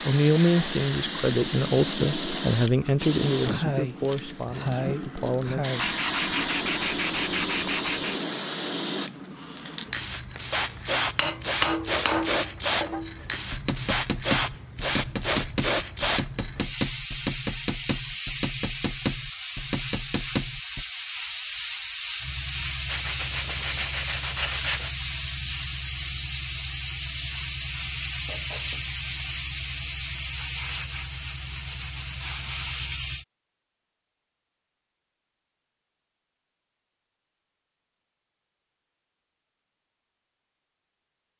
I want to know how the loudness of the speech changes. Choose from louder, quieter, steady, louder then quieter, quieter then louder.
quieter.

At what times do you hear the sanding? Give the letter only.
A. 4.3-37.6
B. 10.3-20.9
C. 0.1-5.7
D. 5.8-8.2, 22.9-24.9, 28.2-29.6
D.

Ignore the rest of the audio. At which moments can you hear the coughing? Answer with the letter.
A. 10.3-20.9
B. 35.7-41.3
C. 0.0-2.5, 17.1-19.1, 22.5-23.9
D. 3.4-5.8
D.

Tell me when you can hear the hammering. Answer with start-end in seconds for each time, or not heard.
10.3-20.9.